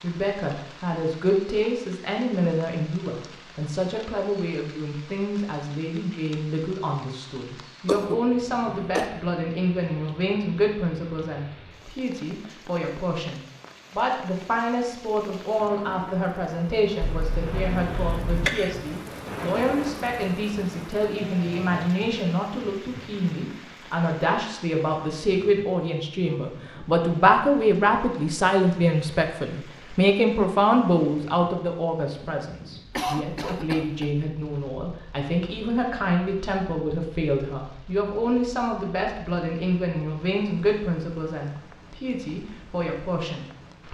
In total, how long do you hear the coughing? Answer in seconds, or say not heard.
4 s.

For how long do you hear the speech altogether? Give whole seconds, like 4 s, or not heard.
44 s.